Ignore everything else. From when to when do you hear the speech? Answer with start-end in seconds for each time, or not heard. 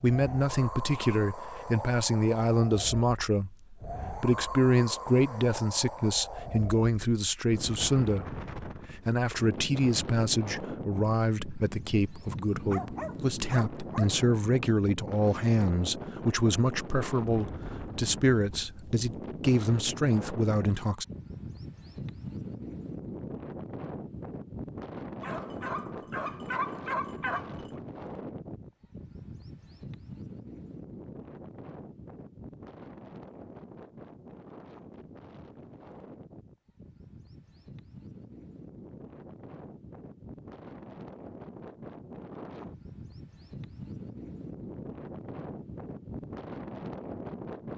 0.0-21.1.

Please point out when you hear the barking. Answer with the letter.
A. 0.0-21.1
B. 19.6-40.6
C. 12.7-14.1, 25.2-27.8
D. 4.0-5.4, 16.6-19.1
C.